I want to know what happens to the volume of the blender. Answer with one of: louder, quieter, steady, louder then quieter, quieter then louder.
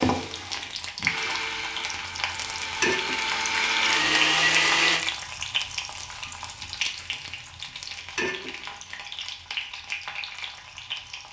louder.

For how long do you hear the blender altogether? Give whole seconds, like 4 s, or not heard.
5 s.